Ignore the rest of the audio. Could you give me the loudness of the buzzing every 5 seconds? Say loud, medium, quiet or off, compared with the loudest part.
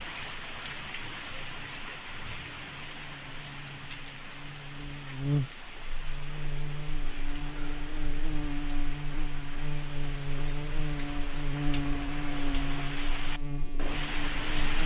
quiet, loud, loud.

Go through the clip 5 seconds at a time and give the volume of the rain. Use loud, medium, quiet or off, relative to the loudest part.
loud, medium, loud.